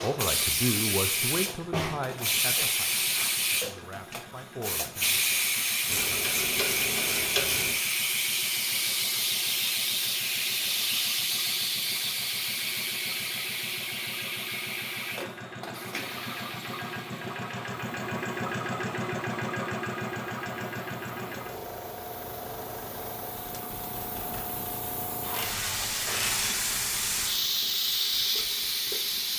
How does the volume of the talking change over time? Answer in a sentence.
The loudness of the talking goes down, then up.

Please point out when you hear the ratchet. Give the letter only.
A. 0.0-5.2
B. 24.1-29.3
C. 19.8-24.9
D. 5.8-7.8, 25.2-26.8
D.